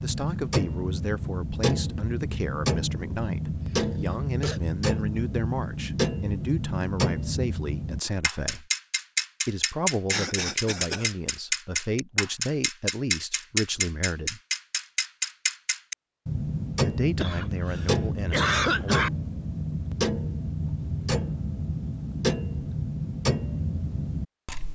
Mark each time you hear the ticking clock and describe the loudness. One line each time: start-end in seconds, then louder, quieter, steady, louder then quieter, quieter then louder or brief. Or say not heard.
0.0-24.7 steady.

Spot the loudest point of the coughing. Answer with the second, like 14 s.
19 s.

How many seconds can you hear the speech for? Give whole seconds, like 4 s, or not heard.
16 s.